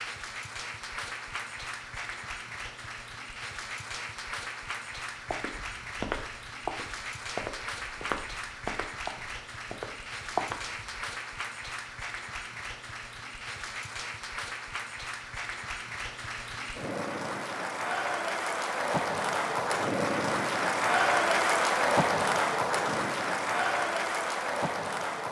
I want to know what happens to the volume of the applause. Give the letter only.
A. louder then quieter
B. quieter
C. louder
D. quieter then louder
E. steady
C.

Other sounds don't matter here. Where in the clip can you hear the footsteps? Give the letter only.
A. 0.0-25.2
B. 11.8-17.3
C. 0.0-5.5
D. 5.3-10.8
D.